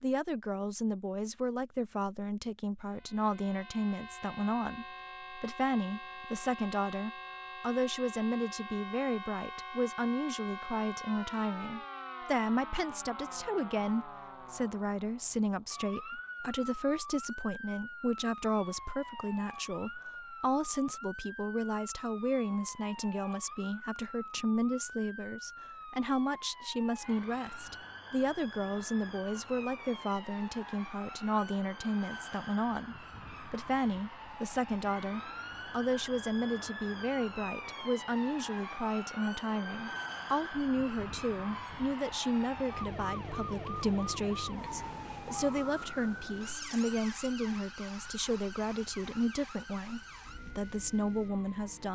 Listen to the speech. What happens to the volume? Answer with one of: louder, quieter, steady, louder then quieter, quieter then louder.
steady.